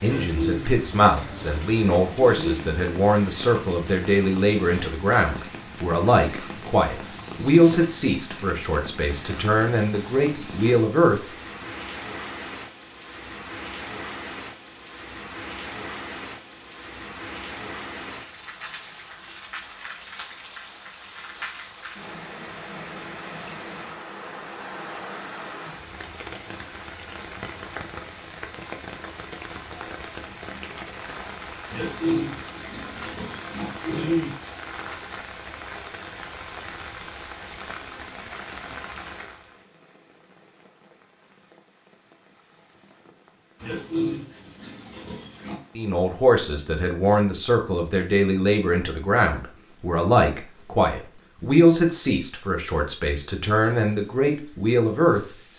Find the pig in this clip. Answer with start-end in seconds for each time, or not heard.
0.1-2.8, 31.7-34.4, 43.6-45.6.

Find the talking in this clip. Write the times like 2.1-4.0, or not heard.
0.0-11.2, 45.8-55.5.